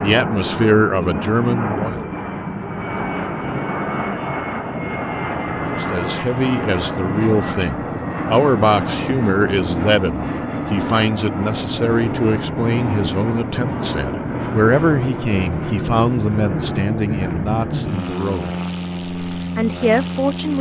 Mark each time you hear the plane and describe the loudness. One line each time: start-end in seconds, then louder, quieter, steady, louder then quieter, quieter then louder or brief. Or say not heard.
0.0-20.5 steady.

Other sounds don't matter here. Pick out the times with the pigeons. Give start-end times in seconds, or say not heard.
not heard.